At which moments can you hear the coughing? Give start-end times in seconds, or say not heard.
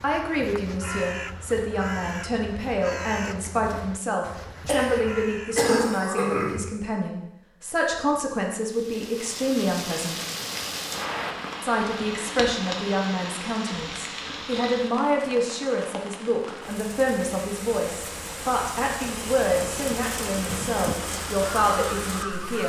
4.7-6.7.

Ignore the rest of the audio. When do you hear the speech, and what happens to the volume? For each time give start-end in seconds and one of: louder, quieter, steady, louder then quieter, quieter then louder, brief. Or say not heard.
0.0-10.2 steady
11.6-22.6 steady.